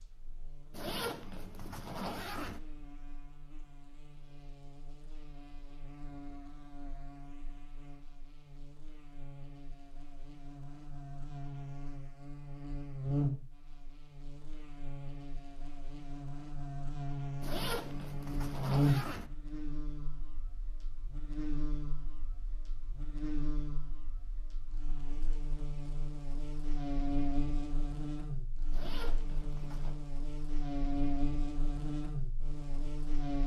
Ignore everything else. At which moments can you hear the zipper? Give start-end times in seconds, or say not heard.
0.7-2.6, 17.4-19.3, 28.7-29.9.